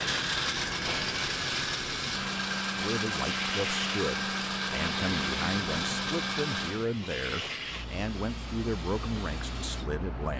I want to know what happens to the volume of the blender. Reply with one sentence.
The volume of the blender stays about the same.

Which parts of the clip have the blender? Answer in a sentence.
The blender can be heard from 0.0 to 6.9 s.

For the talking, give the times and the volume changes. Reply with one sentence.
You can hear the talking from 2.8 to 10.3 s, at a steady volume.